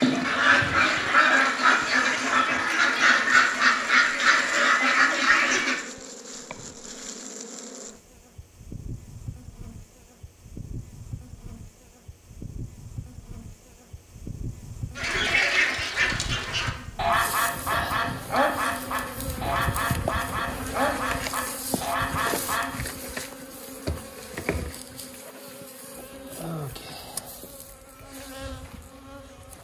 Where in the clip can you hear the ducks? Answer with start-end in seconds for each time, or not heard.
0.0-5.8, 14.9-22.8.